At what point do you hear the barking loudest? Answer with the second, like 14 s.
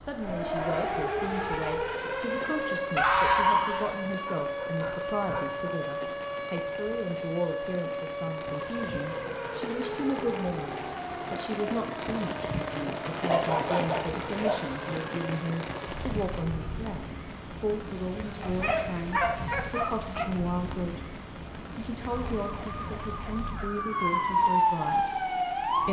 3 s.